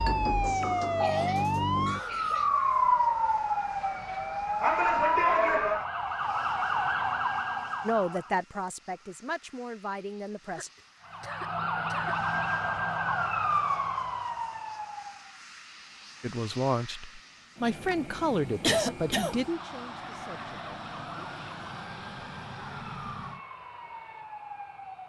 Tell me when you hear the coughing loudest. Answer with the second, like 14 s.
19 s.